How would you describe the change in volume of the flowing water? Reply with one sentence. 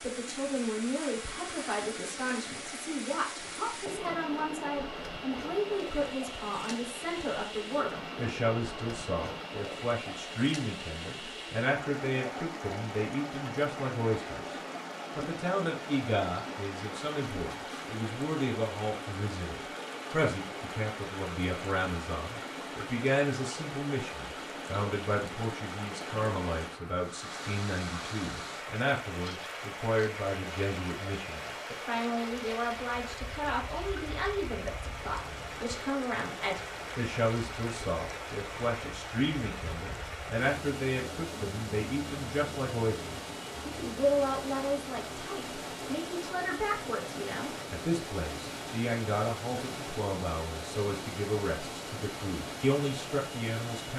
The loudness of the flowing water stays about the same.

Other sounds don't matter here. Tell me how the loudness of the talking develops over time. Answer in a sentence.
The loudness of the talking stays about the same.